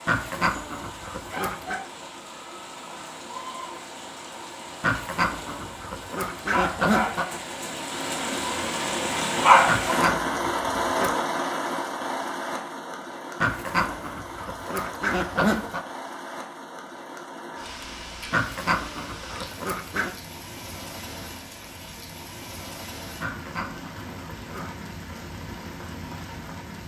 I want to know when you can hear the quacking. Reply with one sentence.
You can hear the quacking from 0.1 to 1.8 s, from 4.8 to 7.2 s, from 9.7 to 11.2 s, from 13.4 to 15.8 s, from 18.3 to 20.1 s and from 23.2 to 24.9 s.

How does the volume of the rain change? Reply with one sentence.
The volume of the rain goes up, then down.